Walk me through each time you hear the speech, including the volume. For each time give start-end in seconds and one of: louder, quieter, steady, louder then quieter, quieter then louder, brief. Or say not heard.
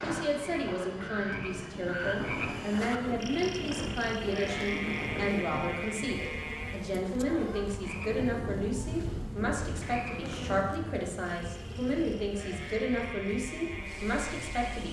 0.0-14.8 steady.